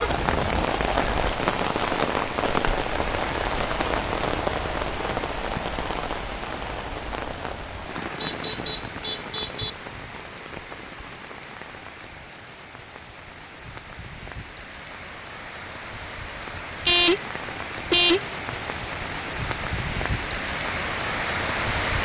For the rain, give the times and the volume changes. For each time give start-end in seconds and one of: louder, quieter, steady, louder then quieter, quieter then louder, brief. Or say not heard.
0.0-22.0 quieter then louder.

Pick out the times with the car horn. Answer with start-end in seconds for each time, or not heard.
0.0-0.7, 8.2-9.7, 16.9-18.4.